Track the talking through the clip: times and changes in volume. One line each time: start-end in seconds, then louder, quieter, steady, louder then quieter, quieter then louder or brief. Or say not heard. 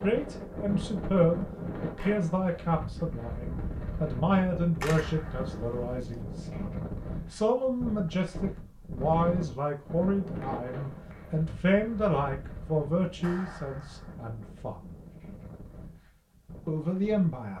0.0-14.9 steady
16.6-17.5 brief.